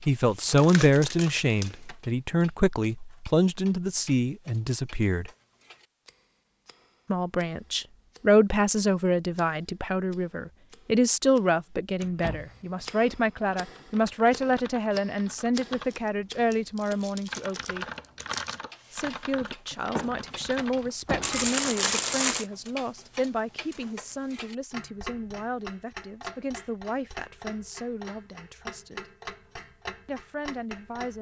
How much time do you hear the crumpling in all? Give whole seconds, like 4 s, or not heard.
5 s.